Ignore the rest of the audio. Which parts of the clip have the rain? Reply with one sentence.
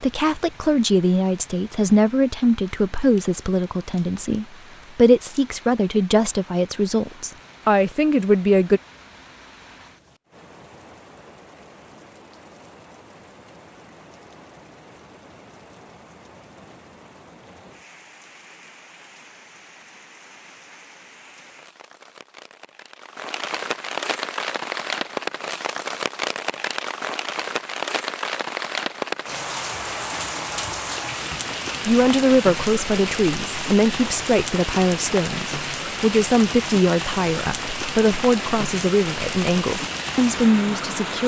You can hear the rain from 0.0 to 41.2 s.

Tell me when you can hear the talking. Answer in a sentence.
You can hear the talking from 0.0 to 8.8 s and from 31.9 to 41.2 s.